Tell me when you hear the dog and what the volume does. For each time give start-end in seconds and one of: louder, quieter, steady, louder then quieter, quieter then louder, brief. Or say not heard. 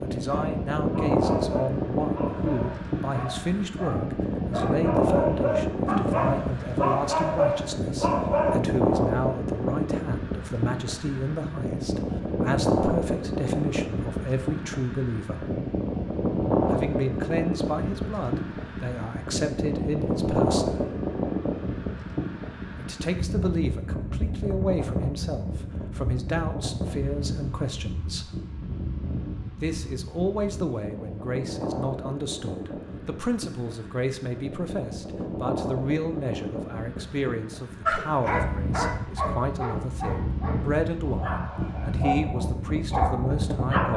0.3-8.6 louder
37.9-43.9 quieter then louder.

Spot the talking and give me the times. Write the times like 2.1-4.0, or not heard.
0.0-15.5, 16.7-20.8, 22.8-28.3, 29.6-43.9.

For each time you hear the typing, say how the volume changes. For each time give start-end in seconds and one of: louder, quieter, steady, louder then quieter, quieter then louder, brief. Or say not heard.
not heard.